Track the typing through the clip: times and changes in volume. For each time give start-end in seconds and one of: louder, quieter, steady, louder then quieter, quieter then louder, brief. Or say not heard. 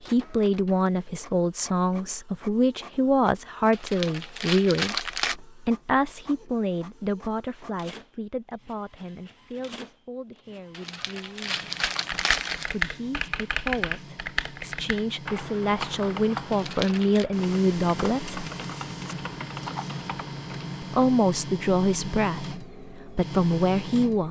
11.9-21.1 quieter.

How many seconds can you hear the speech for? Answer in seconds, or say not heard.
21 s.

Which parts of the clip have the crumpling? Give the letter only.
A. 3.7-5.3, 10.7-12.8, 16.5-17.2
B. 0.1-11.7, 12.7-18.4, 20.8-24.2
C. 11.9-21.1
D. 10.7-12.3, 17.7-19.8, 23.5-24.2
A.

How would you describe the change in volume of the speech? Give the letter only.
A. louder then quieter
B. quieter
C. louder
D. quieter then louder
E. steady
D.